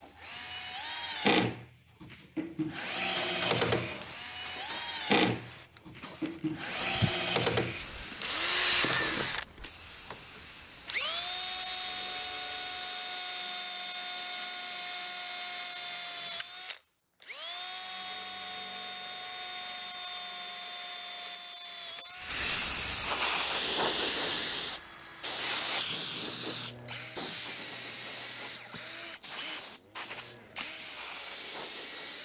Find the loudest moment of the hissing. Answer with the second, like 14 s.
24 s.